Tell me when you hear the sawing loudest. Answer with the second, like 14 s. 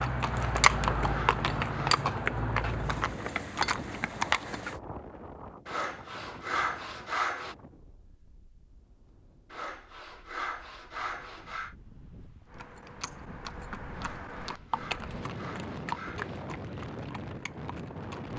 7 s.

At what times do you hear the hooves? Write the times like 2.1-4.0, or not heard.
0.0-4.8, 12.5-18.3.